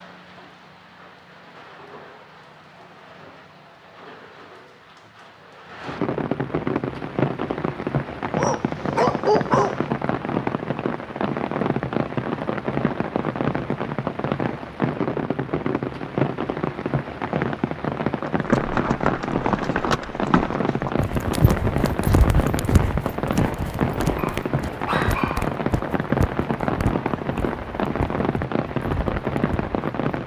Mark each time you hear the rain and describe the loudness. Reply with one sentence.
The rain can be heard from 0.0 to 30.2 s, getting louder.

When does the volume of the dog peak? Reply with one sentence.
The volume of the dog peaks at 9 seconds.